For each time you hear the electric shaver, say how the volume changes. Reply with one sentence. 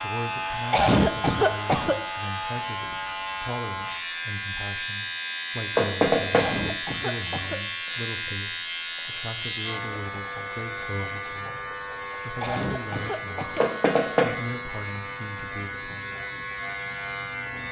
The electric shaver can be heard from 0.0 to 17.6 s, at a steady volume.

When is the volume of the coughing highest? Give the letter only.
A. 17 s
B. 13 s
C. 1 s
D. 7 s
C.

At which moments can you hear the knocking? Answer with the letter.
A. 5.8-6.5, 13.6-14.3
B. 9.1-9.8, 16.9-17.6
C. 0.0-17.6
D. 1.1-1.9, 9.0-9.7
A.